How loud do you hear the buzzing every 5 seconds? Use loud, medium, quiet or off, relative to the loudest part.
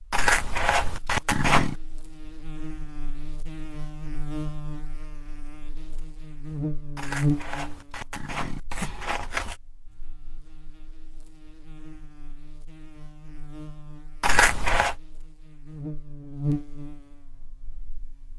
medium, loud, quiet, loud.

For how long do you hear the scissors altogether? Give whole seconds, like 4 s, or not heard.
5 s.